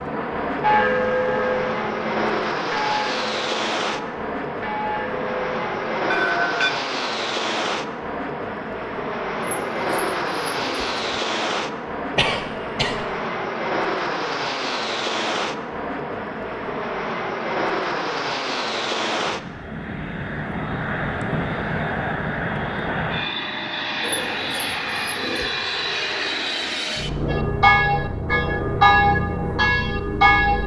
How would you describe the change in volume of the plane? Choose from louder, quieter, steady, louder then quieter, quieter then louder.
steady.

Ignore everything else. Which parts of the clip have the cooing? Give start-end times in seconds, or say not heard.
9.4-11.2, 24.0-25.6.